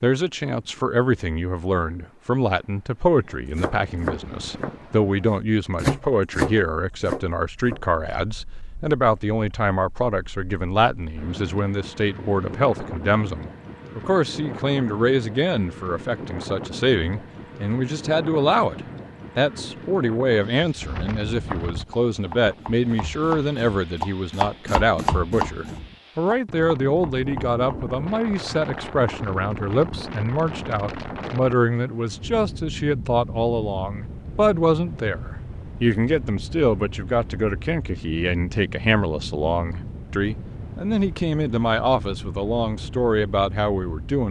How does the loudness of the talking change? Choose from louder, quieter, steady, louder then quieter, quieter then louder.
steady.